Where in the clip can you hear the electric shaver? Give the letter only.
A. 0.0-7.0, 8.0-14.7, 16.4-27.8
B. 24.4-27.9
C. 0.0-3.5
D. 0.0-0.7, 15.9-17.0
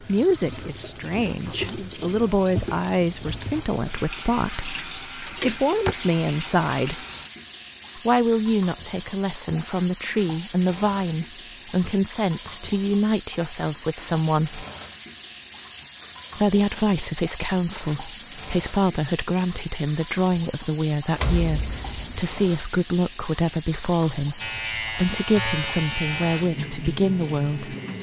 B.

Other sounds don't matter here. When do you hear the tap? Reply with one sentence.
The tap can be heard from 0.0 to 27.9 s.